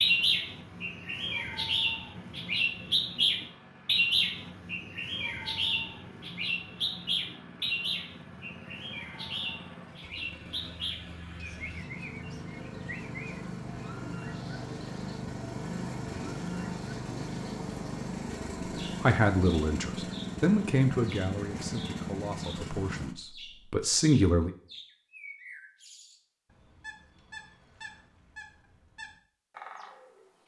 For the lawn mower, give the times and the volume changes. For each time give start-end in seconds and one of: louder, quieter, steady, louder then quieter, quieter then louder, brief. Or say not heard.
0.0-23.1 louder.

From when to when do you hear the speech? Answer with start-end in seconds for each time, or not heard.
19.0-24.5.